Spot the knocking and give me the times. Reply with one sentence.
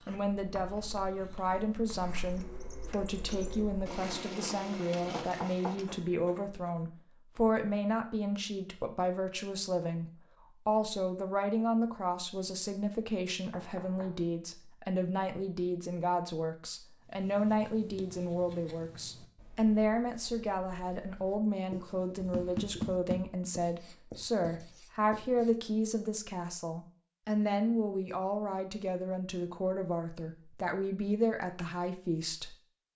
The knocking can be heard from 5.1 to 5.8 s, from 13.5 to 14.2 s and from 22.1 to 23.4 s.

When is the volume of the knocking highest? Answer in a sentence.
The loudest moment of the knocking is at 23 seconds.